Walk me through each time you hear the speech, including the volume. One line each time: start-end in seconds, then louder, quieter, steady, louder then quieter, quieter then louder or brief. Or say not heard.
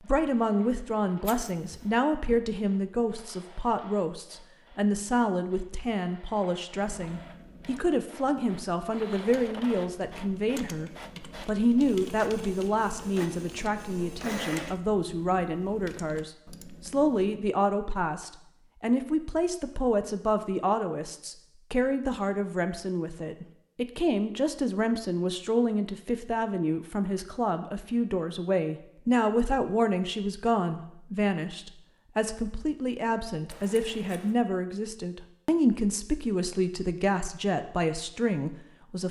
0.0-39.0 steady.